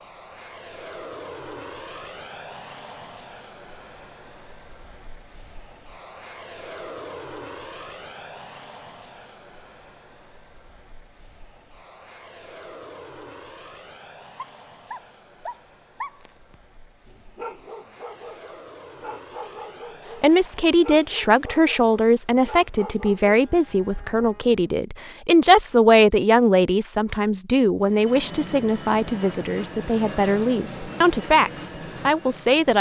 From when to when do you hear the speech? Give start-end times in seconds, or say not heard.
20.2-32.7.